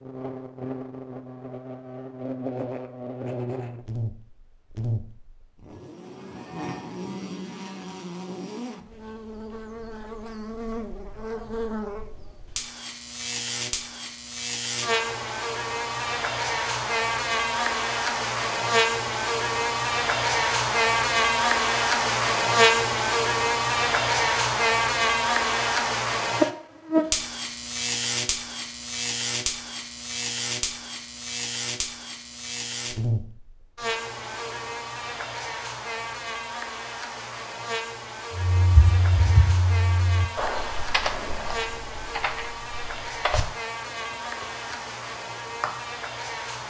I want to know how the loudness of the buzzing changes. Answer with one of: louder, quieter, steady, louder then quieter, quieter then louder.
louder then quieter.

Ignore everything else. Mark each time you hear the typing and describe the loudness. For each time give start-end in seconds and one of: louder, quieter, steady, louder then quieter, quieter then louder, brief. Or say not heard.
38.4-45.7 quieter.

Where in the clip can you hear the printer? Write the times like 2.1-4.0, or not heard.
not heard.